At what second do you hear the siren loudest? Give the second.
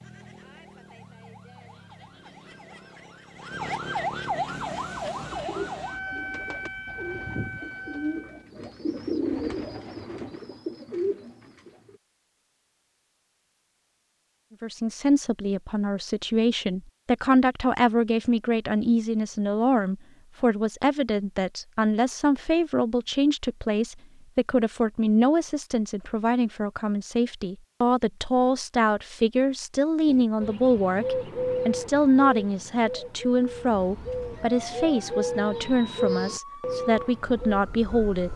4 s.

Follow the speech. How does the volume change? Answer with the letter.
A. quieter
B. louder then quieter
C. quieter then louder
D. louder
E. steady
E.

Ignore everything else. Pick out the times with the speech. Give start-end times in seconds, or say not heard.
14.6-38.3.